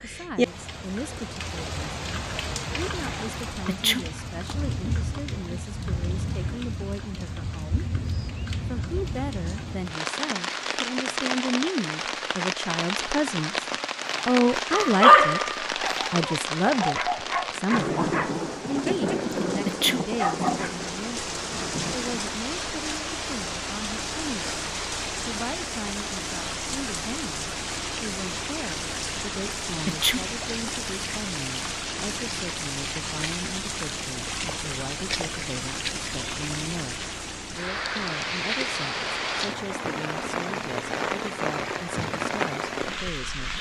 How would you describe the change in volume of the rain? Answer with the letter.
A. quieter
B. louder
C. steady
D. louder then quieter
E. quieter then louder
C.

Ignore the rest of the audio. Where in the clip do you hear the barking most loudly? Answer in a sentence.
The volume of the barking peaks at 15 seconds.